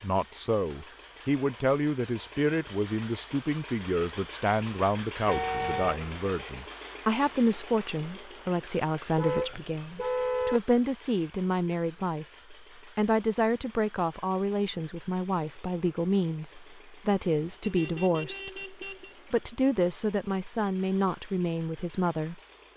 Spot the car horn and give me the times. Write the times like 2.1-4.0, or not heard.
5.2-6.0, 9.2-10.6, 17.6-19.1.